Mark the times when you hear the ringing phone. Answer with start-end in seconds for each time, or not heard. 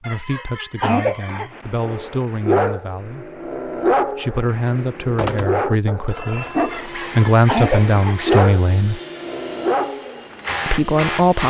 5.2-6.8.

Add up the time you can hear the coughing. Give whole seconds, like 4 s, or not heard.
3 s.